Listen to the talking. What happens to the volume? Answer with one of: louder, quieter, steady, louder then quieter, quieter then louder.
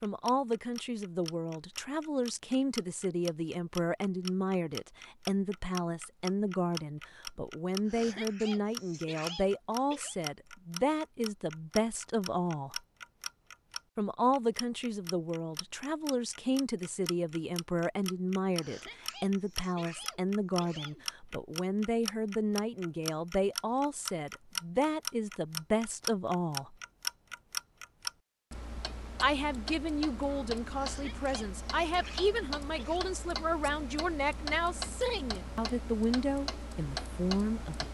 steady.